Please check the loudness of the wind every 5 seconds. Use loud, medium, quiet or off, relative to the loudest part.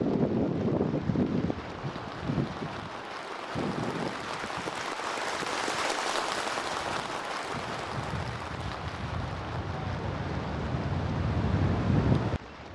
loud, medium, loud.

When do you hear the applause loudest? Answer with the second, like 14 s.
6 s.